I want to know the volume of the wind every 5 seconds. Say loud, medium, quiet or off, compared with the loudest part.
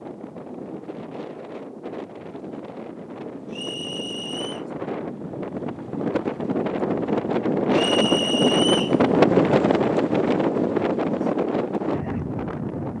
quiet, loud, loud.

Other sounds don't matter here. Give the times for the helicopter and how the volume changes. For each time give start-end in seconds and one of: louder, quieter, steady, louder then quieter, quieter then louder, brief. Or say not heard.
not heard.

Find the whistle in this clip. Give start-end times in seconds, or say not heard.
3.5-4.7, 7.7-8.9.